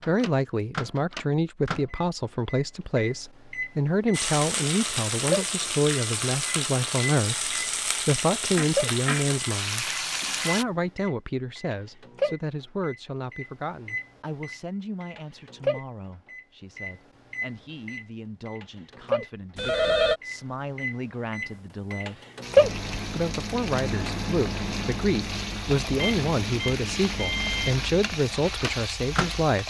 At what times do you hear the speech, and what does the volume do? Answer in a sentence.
The speech can be heard from 0.1 to 29.6 s, getting quieter then louder.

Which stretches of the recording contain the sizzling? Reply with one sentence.
You can hear the sizzling from 4.1 to 10.7 s and from 22.4 to 29.6 s.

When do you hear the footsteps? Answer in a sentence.
The footsteps can't be heard in this clip.